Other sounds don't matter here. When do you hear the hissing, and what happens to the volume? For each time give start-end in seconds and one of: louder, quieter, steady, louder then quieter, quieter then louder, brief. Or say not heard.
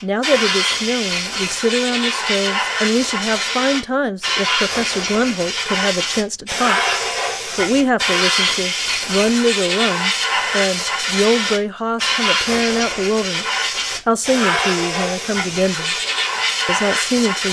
0.0-17.4 steady.